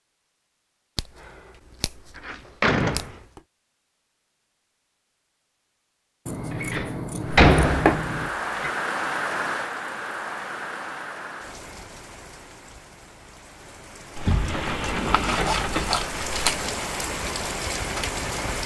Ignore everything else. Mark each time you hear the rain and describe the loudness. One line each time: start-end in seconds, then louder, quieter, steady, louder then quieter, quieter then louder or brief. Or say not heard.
7.2-18.6 quieter then louder.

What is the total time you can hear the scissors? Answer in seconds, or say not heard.
6 s.